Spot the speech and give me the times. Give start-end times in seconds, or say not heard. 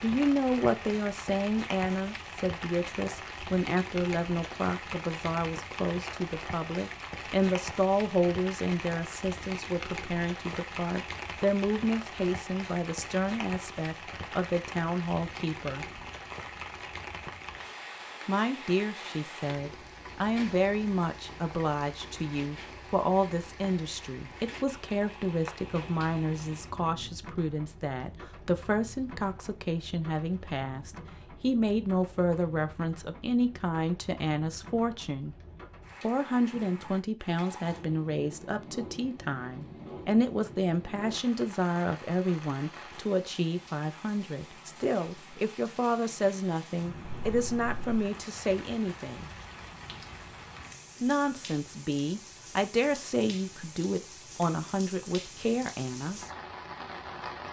0.0-15.8, 18.2-35.4, 36.0-49.3, 51.0-56.2.